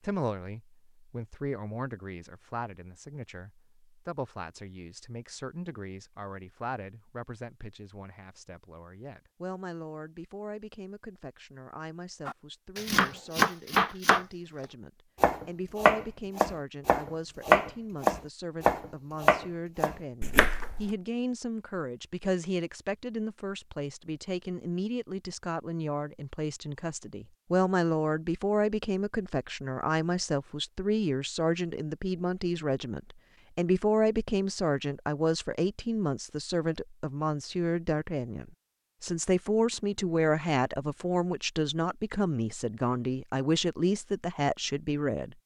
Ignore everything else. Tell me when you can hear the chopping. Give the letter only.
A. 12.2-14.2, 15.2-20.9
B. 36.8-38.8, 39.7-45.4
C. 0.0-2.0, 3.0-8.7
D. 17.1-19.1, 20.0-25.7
A.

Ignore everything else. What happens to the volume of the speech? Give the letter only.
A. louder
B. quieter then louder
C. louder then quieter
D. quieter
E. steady
A.